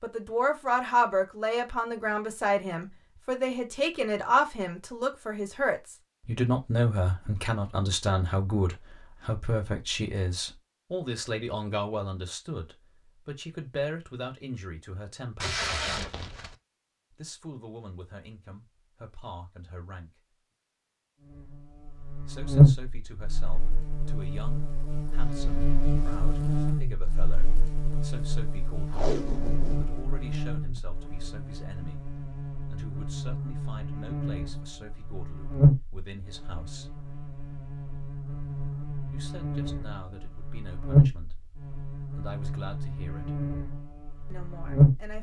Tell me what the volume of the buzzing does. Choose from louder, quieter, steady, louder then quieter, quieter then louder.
quieter then louder.